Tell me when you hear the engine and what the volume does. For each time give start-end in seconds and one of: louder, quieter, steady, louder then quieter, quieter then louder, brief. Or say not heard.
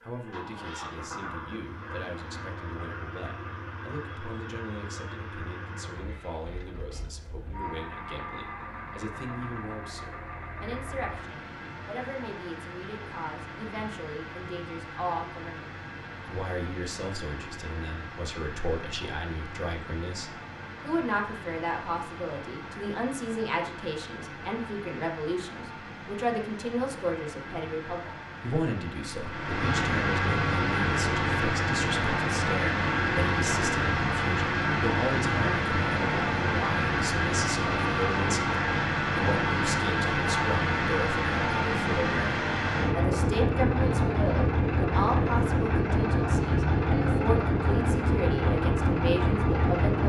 0.0-50.0 louder.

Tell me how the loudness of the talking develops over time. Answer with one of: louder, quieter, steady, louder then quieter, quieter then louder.
louder.